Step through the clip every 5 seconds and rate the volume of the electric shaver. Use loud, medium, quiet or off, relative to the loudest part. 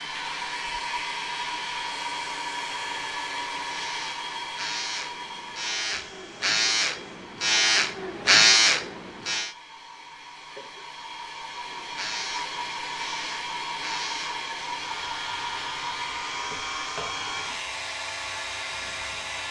quiet, loud, quiet, quiet.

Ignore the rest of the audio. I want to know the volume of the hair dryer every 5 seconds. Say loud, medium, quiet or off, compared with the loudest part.
loud, medium, loud, loud.